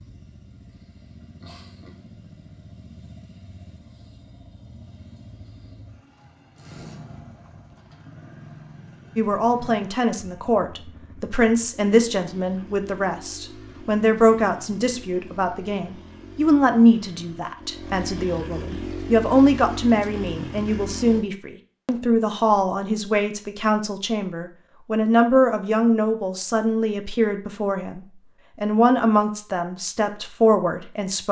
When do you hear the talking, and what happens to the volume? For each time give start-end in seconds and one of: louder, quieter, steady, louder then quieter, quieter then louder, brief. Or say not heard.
9.2-31.2 steady.